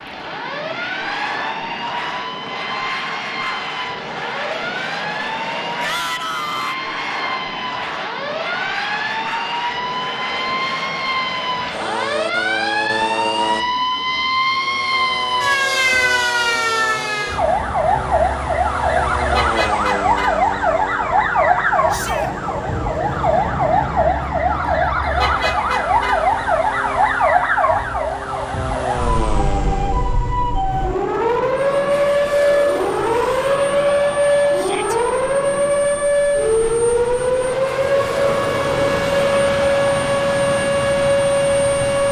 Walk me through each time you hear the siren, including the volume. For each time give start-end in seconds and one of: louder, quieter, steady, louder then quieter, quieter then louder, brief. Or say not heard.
0.0-42.0 louder.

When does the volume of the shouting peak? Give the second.
6 s.